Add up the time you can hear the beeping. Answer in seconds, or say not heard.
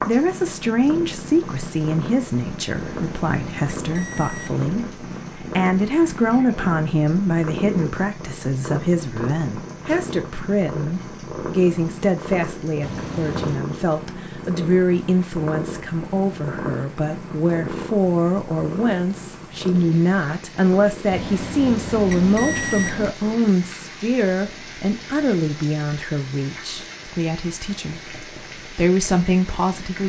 5 s.